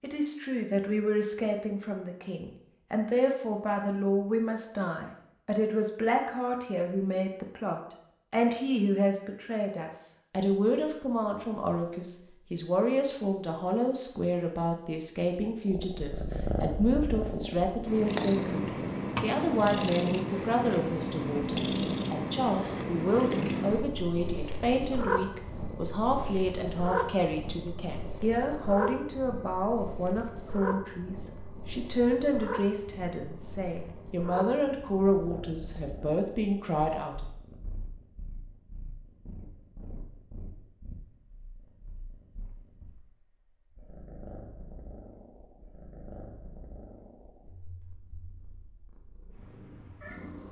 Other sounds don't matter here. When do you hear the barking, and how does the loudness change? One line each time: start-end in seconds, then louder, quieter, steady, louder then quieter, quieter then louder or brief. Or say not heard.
not heard.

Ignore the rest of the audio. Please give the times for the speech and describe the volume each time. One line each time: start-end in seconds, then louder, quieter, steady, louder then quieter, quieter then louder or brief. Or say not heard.
0.0-37.2 steady.